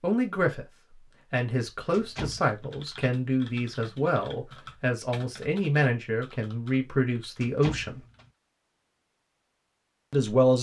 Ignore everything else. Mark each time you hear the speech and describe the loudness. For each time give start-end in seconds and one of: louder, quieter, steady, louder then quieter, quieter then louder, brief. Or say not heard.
0.0-0.7 brief
1.3-8.0 steady
10.1-10.5 brief.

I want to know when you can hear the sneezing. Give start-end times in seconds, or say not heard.
not heard.